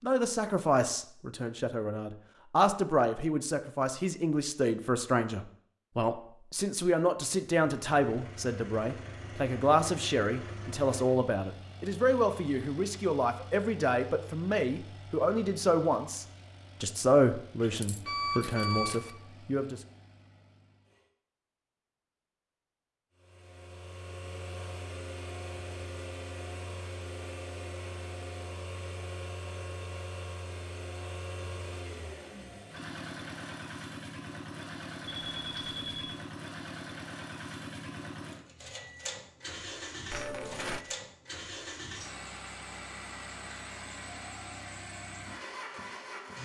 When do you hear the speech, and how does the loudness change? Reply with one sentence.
The speech can be heard from 0.0 to 19.8 s, at a steady volume.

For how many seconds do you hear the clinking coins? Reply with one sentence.
You can hear the clinking coins for 2 seconds altogether.